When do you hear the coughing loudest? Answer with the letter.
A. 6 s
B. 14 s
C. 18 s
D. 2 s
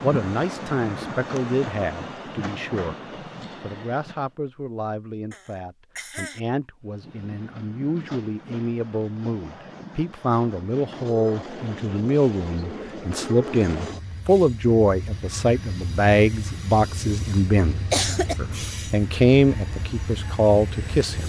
C.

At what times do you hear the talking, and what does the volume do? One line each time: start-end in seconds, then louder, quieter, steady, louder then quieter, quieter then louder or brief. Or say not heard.
0.0-3.0 brief
3.6-21.2 louder.